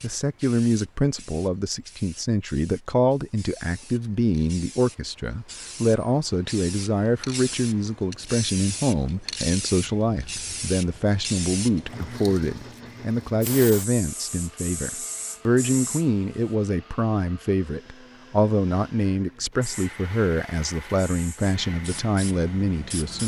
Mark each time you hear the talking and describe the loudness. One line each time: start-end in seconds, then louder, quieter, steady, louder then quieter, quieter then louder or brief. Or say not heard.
0.0-23.2 steady.